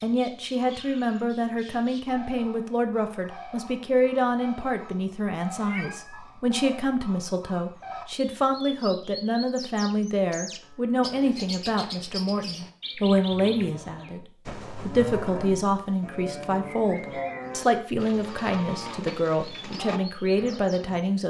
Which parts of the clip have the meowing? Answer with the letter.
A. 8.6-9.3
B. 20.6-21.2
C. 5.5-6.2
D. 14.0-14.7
C.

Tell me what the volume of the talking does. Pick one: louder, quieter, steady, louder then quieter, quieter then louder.
steady.